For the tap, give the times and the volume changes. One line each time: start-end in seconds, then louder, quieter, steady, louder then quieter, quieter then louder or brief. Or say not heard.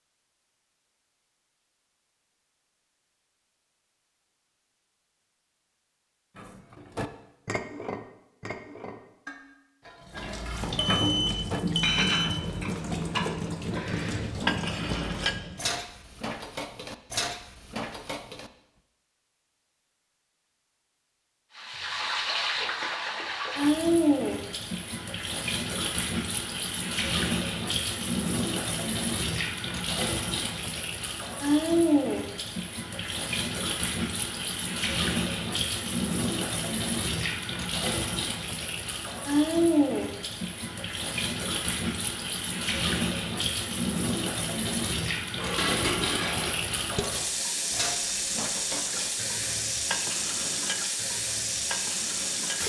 10.1-15.8 steady
21.6-52.6 steady.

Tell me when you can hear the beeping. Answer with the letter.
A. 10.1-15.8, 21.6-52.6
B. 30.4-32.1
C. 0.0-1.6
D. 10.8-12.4
D.